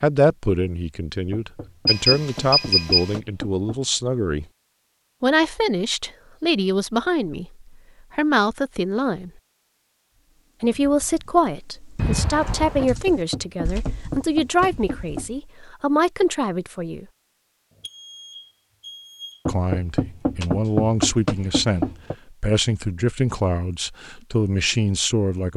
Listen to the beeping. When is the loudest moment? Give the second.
3 s.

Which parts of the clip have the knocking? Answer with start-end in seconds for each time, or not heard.
1.3-3.8, 12.8-15.3, 19.4-22.1.